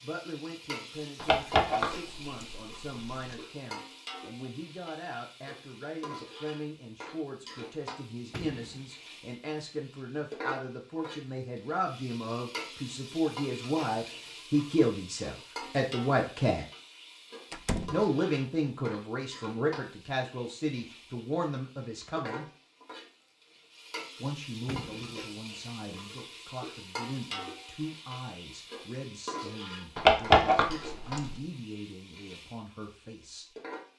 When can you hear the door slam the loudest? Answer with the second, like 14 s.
18 s.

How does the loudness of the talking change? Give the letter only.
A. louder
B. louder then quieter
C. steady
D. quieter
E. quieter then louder
B.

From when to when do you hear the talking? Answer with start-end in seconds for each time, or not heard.
0.0-16.6, 17.9-22.4, 24.2-33.5.